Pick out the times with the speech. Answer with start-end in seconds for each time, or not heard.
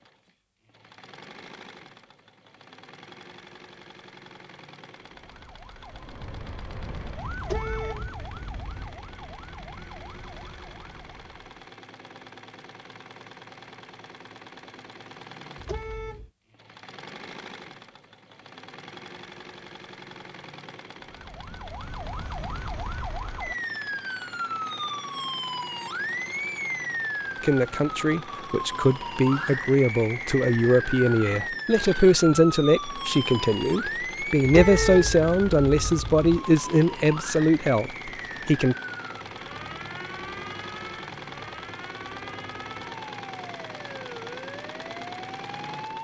27.4-38.8.